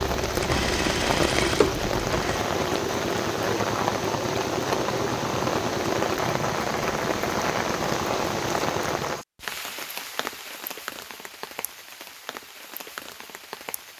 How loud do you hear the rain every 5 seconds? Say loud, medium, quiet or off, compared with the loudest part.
loud, loud, quiet.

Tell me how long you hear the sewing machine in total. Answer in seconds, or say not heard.
2 s.